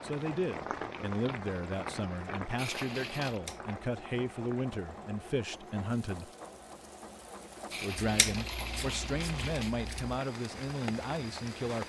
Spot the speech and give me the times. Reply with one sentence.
You can hear the speech from 0.0 to 6.3 s and from 7.7 to 11.8 s.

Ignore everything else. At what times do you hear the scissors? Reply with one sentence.
The scissors can be heard from 3.2 to 3.8 s and from 8.0 to 10.2 s.